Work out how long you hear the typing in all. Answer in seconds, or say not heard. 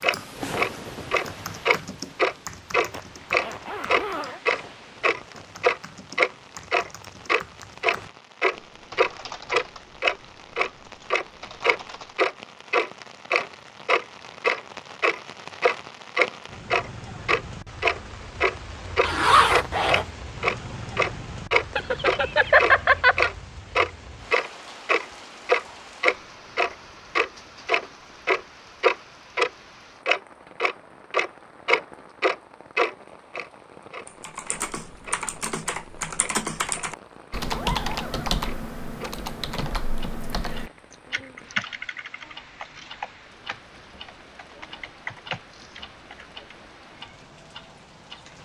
25 s.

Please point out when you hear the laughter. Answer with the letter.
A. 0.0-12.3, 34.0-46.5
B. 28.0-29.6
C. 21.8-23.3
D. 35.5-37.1
C.